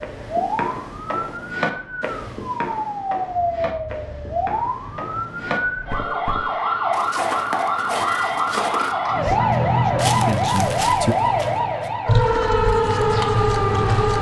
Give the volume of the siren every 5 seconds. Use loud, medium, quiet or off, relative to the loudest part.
medium, loud, loud.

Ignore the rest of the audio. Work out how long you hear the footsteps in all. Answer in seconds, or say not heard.
12 s.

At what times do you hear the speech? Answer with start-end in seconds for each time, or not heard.
9.1-11.2.